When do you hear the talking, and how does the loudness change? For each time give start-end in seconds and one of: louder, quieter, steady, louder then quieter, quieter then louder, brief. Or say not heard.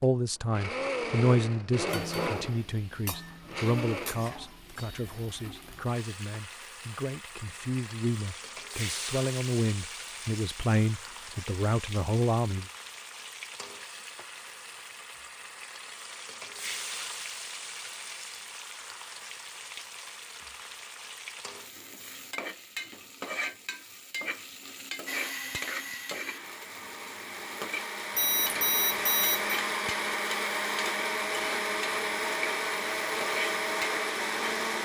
0.0-12.7 quieter then louder.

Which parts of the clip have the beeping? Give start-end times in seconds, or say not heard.
28.1-29.6.